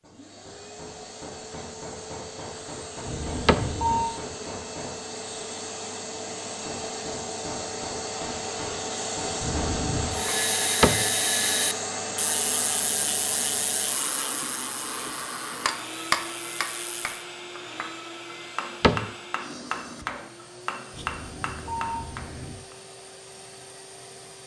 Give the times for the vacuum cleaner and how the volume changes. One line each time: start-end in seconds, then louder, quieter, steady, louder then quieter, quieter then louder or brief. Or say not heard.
0.0-24.4 louder then quieter.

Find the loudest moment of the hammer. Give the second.
16 s.